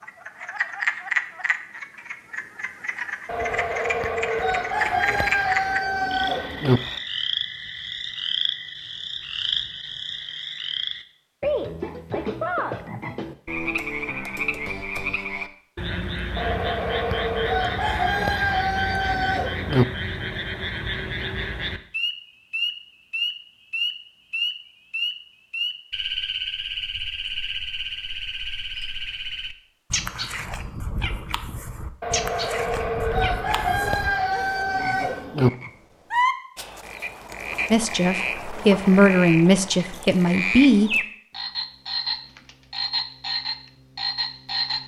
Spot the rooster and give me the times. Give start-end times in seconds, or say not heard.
3.2-6.8, 16.4-19.9, 32.0-35.5.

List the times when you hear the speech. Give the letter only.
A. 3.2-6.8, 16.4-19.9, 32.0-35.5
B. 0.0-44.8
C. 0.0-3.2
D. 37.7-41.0
D.